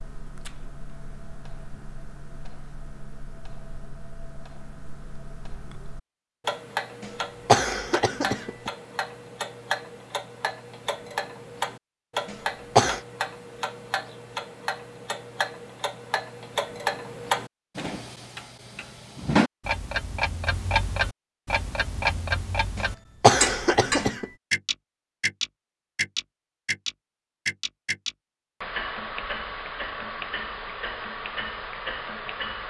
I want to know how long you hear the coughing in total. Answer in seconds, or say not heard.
4 s.